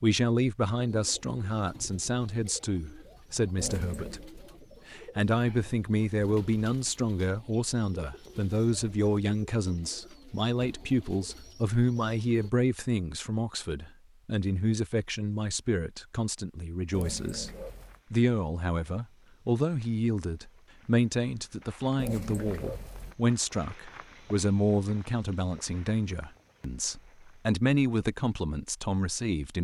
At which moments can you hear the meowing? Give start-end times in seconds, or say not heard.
3.5-4.3, 16.9-18.0, 21.9-23.1.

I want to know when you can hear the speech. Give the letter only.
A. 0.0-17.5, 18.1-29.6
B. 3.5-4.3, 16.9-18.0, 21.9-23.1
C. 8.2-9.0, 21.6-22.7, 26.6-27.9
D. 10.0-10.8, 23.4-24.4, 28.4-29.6
A.